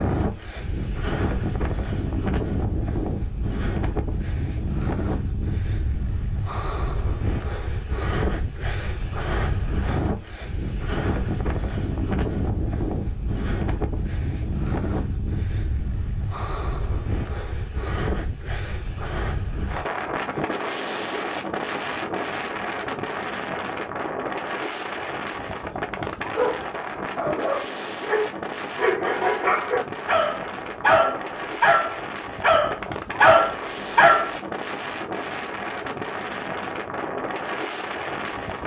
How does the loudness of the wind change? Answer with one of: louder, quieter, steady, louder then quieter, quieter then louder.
steady.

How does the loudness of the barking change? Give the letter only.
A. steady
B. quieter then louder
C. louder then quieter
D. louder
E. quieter
D.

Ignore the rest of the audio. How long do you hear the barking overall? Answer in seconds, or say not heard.
8 s.